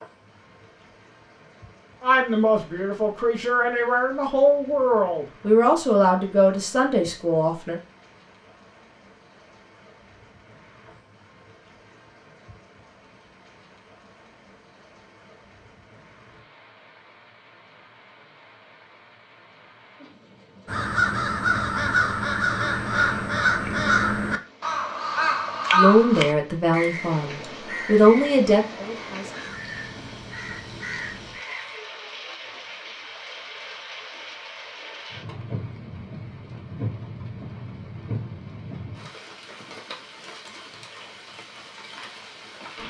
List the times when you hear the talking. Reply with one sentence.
The talking can be heard from 2.0 to 7.8 s and from 25.7 to 29.4 s.